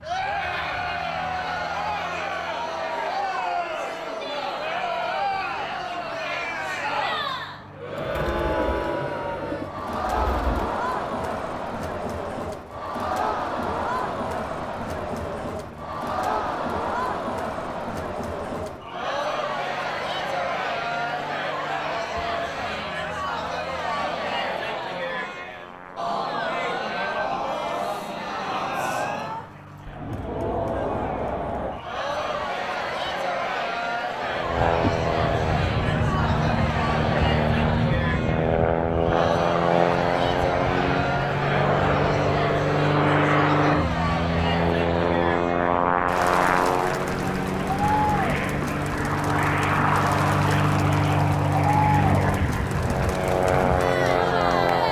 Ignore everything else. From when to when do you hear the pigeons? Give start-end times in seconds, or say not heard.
8.0-10.7.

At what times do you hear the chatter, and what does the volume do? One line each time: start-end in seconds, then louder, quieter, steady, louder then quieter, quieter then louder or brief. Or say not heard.
0.0-54.8 steady.